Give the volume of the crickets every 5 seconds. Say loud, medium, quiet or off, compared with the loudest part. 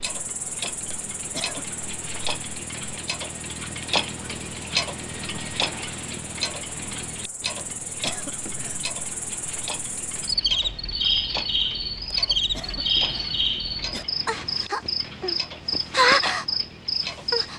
quiet, quiet, loud, loud.